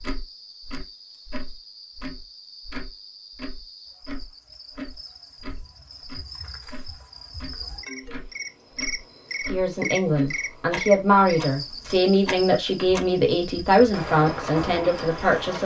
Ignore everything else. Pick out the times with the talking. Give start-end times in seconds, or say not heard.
9.4-15.5.